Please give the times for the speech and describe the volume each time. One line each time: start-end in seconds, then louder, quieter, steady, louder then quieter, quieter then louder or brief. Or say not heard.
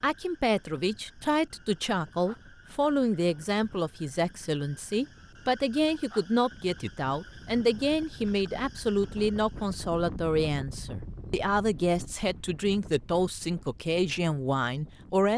0.0-15.3 steady.